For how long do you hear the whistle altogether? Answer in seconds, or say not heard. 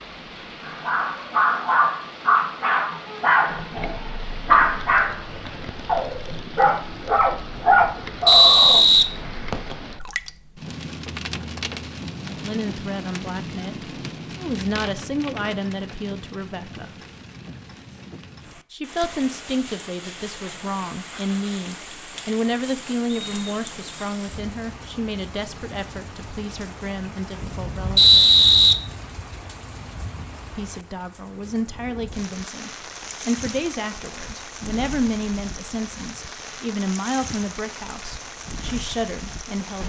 3 s.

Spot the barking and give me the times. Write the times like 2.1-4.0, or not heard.
0.6-8.8.